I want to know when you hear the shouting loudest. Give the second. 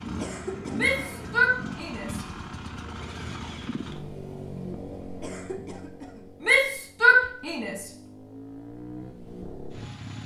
7 s.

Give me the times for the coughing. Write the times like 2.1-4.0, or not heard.
0.1-1.0, 5.2-6.2.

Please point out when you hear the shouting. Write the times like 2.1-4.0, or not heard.
0.8-2.2, 6.4-7.8.